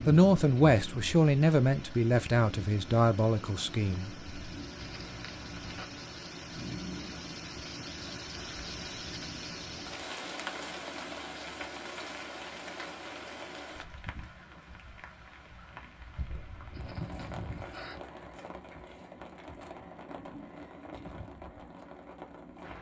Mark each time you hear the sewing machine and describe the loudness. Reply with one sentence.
The sewing machine can't be heard in this clip.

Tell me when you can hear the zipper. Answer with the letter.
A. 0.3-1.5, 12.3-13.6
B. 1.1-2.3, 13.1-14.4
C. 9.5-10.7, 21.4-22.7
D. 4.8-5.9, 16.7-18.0
D.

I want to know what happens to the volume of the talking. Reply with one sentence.
The loudness of the talking goes down.